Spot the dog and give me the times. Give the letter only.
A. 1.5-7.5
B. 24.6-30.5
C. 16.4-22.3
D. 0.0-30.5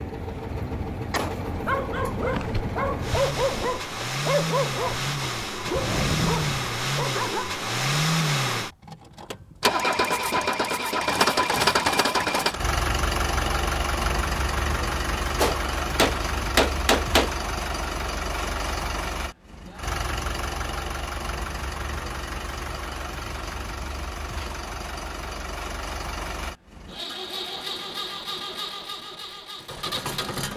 A.